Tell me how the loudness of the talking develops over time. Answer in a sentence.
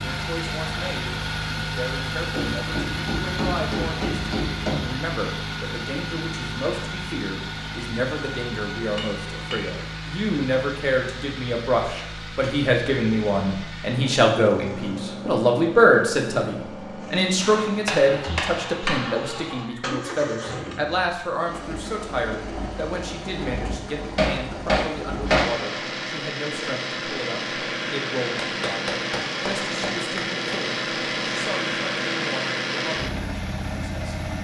The loudness of the talking goes up, then down.